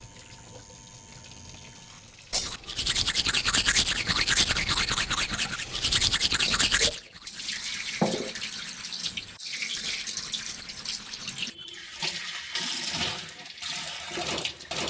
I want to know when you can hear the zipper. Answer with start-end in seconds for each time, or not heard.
not heard.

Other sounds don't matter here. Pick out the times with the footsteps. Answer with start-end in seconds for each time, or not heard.
not heard.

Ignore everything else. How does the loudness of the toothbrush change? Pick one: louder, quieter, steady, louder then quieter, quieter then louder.
quieter.